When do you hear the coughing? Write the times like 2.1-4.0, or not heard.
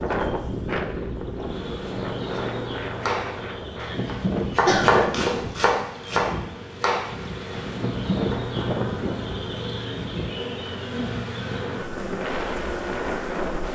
4.7-5.5.